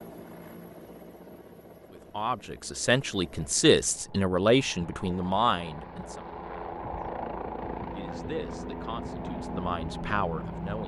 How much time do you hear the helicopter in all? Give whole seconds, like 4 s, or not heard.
11 s.